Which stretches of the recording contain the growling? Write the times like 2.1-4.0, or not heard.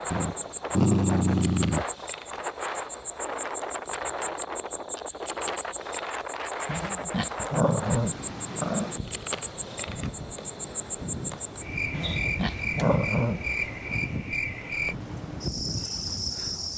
0.1-1.9, 6.7-8.9, 11.9-13.4.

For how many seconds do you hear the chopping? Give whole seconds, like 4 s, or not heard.
not heard.